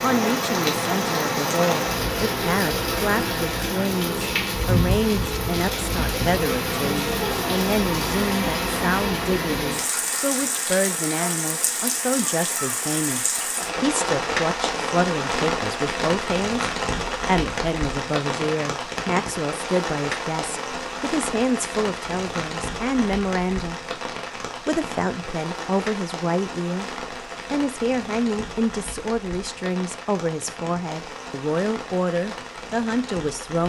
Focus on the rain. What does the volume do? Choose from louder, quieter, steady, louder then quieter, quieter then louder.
quieter.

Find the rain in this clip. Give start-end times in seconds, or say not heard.
0.0-33.6.